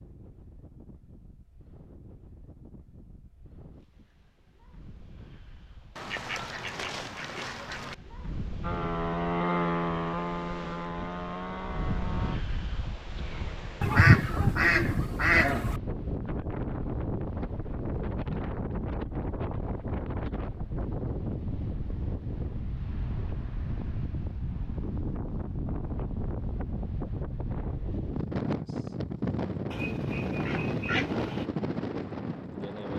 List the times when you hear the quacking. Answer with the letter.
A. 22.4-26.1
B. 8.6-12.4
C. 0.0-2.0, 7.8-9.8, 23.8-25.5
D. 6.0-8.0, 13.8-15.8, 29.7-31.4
D.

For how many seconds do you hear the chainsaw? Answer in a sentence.
You can hear the chainsaw for 4 seconds altogether.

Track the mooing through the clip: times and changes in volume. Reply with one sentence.
The mooing can't be heard in this clip.